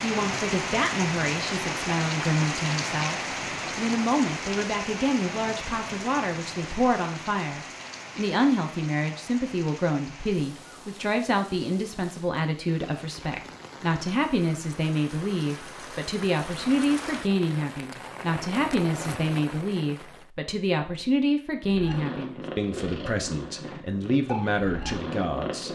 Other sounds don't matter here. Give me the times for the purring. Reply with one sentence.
You can hear the purring from 21.6 to 25.6 s.